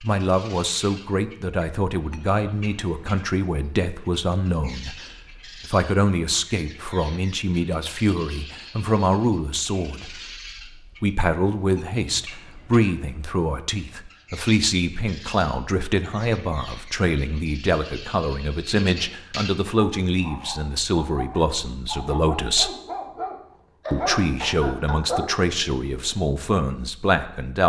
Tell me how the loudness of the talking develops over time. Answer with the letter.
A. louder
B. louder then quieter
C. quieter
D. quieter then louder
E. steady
E.